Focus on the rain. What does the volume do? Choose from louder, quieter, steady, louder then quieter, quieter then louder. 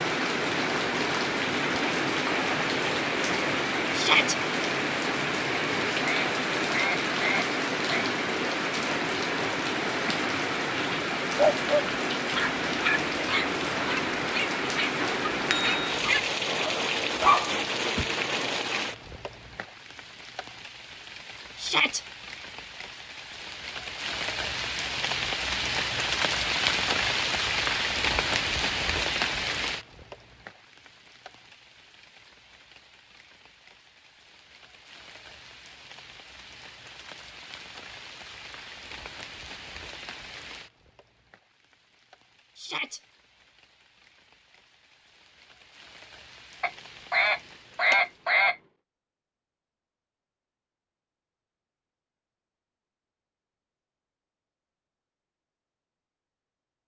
quieter.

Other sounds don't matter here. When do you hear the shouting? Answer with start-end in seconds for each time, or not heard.
3.9-4.3, 21.6-22.0, 42.5-43.0.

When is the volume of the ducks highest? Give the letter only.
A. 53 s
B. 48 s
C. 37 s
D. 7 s
B.